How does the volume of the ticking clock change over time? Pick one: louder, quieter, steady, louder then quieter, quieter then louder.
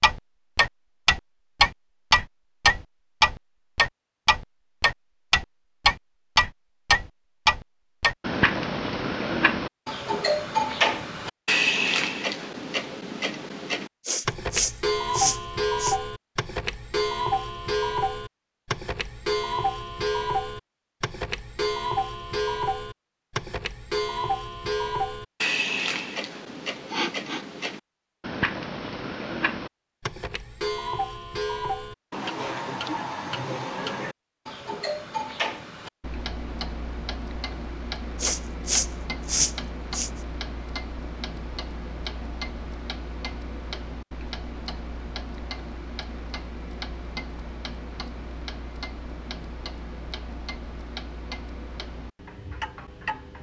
quieter.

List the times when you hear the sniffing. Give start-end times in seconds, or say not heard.
14.1-15.9, 26.9-27.8, 38.2-40.1.